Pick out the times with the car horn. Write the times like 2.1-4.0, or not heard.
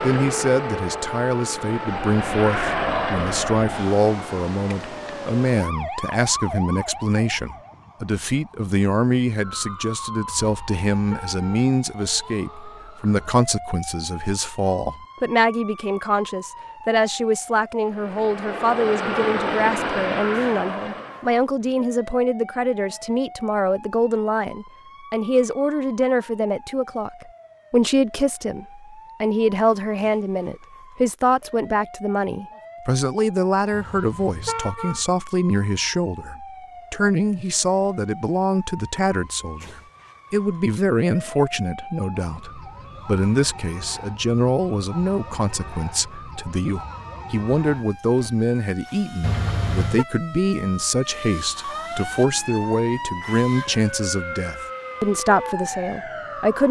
10.4-11.7, 33.7-35.0, 49.2-50.0.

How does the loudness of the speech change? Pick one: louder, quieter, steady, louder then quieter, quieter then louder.
steady.